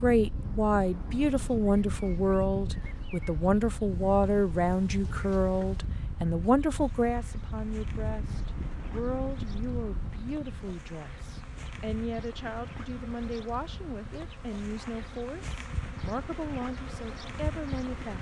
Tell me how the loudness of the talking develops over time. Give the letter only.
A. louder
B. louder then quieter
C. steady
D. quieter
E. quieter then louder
D.